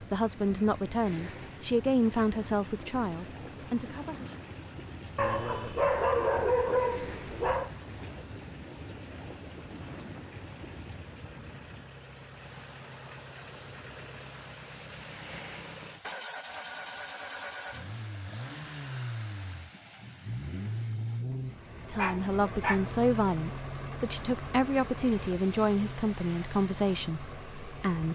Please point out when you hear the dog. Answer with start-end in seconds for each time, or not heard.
5.2-7.7, 21.9-22.8.